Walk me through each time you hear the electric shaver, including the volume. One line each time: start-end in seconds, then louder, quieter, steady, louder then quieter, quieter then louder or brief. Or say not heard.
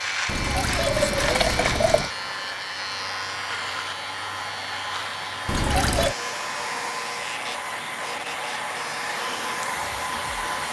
0.0-10.6 quieter.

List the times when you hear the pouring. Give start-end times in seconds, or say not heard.
0.2-2.1, 5.5-6.2.